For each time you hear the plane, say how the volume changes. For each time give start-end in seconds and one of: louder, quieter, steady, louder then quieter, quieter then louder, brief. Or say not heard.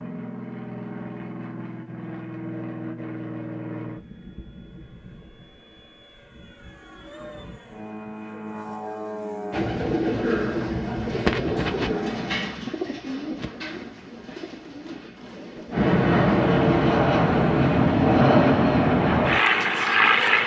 0.0-12.6 quieter then louder
15.7-20.4 steady.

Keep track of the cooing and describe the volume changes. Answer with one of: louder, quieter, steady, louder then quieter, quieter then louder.
quieter.